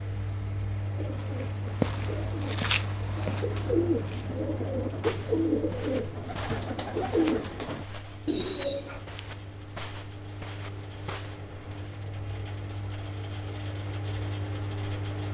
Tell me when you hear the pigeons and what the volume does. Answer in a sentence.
The pigeons can be heard from 0.9 to 9.1 s, getting louder.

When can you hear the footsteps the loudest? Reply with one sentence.
The volume of the footsteps peaks at 2 seconds.